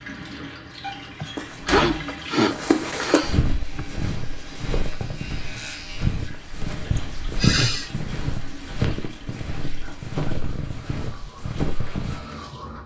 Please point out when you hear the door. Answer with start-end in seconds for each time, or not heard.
0.8-2.1.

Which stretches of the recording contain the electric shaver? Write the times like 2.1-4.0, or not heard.
3.5-6.3.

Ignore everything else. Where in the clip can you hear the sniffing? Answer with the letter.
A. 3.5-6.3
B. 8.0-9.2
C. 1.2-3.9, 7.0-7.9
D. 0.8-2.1
C.